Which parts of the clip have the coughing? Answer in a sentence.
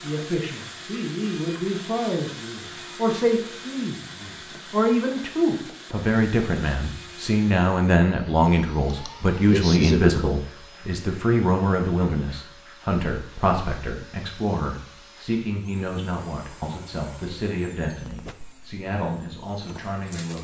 The coughing can be heard from 8.9 to 10.4 s.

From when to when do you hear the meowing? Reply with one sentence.
The meowing can't be heard in this clip.